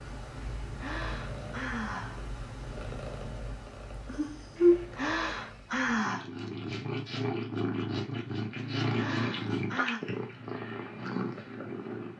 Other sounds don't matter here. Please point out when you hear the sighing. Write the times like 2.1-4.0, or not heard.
0.7-2.2, 4.5-6.3, 8.8-10.0.